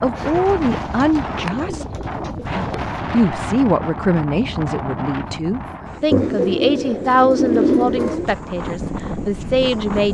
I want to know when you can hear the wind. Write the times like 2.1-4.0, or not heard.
0.0-10.0.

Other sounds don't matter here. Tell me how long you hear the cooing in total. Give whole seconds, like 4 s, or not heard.
5 s.